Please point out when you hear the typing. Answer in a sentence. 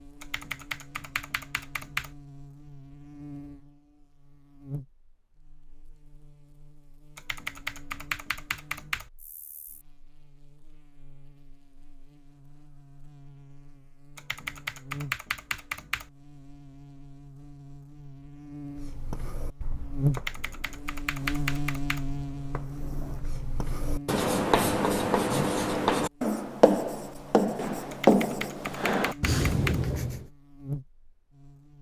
You can hear the typing from 0.2 to 2.1 s, from 7.2 to 9.1 s, from 14.2 to 16.1 s, from 20.1 to 22.1 s and from 27.9 to 29.9 s.